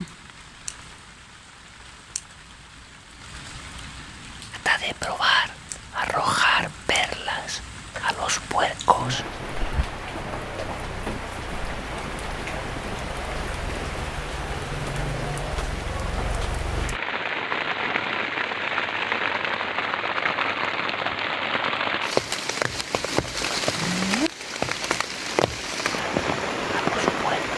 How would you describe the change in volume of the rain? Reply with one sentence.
The loudness of the rain goes up.